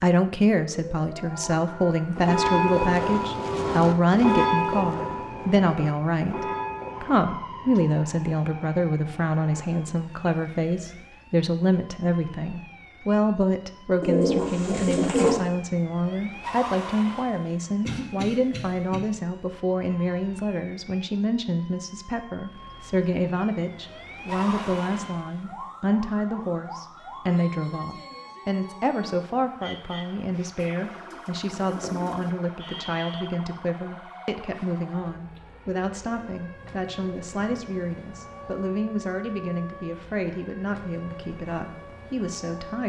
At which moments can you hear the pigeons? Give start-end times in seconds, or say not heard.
14.0-15.4, 30.6-32.3.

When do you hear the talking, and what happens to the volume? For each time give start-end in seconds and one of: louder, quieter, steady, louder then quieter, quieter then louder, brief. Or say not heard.
0.0-42.8 quieter.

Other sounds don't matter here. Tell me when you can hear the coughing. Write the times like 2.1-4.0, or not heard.
17.9-19.0.